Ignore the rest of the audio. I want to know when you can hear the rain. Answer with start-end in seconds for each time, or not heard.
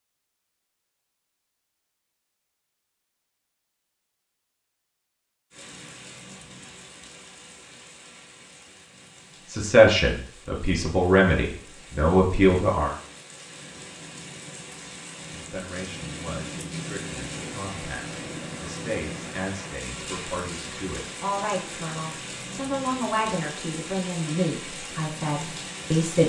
5.5-26.2.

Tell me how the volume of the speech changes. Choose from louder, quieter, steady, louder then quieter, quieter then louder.
quieter then louder.